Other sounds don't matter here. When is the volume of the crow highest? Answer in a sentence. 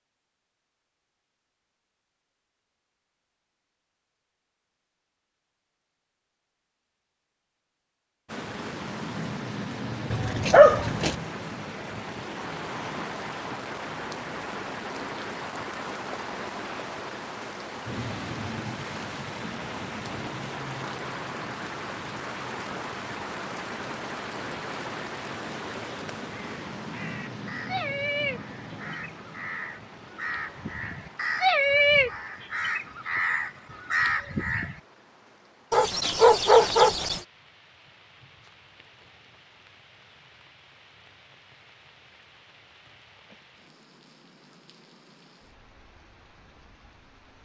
The loudest moment of the crow is at 32 seconds.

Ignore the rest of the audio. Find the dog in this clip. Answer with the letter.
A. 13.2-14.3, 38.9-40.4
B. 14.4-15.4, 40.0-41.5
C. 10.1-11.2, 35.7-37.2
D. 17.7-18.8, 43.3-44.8
C.